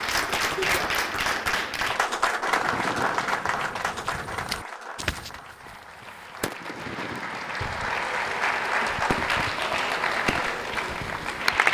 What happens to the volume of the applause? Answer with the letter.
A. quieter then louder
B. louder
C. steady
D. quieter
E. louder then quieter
A.